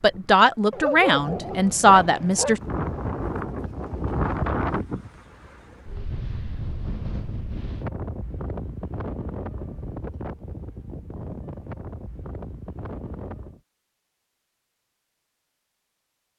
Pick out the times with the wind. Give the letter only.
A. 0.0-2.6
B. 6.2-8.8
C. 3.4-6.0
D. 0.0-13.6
D.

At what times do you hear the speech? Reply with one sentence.
You can hear the speech from 0.0 to 2.6 s.